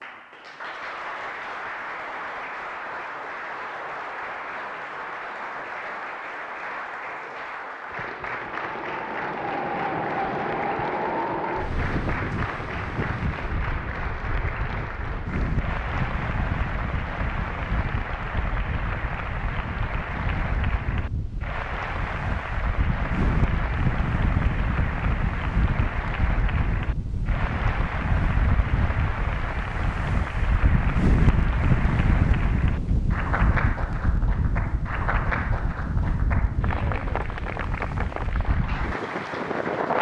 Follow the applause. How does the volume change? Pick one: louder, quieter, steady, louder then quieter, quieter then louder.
steady.